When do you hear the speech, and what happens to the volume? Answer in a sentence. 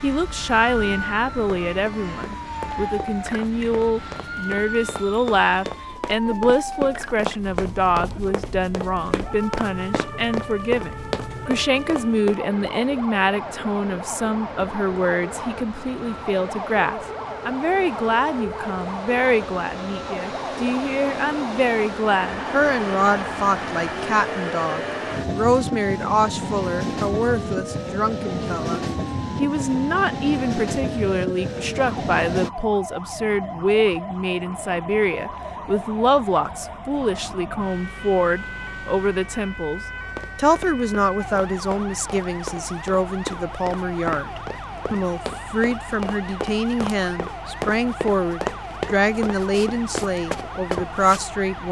The speech can be heard from 0.0 to 51.6 s, at a steady volume.